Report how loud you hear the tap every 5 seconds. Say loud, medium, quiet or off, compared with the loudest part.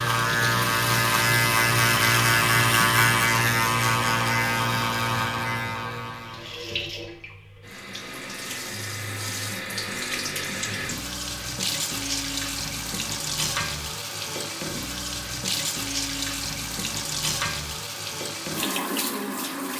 loud, medium, loud, loud.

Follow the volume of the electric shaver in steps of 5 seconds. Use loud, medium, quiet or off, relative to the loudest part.
loud, medium, off, off.